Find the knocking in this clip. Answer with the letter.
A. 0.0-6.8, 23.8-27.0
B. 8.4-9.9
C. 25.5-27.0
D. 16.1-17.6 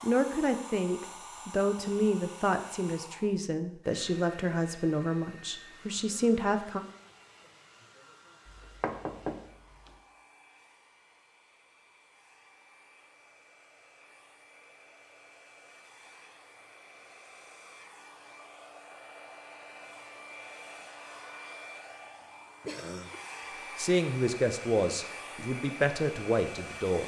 B.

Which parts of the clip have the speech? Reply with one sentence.
You can hear the speech from 0.0 to 6.8 s and from 23.8 to 27.0 s.